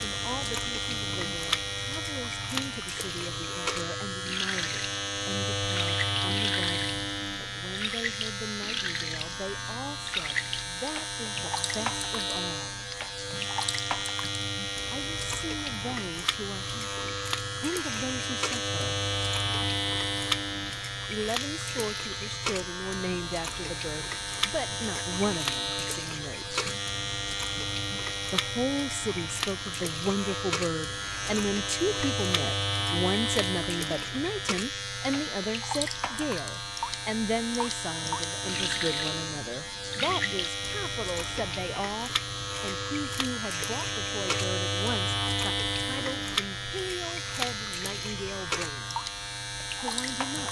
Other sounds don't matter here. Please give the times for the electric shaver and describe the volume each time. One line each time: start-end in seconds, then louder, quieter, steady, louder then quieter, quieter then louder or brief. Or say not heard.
0.0-50.4 steady.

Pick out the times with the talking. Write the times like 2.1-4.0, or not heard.
0.0-12.8, 14.9-18.9, 21.1-26.6, 28.3-49.0, 49.8-50.4.